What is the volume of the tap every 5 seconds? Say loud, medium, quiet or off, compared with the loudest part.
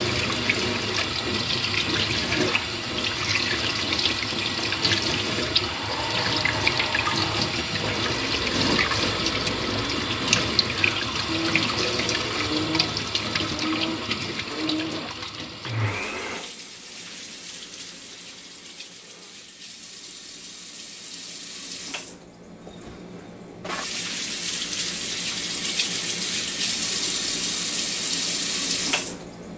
loud, loud, loud, quiet, medium, loud.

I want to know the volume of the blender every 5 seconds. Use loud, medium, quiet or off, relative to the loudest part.
off, loud, loud, medium, off, off.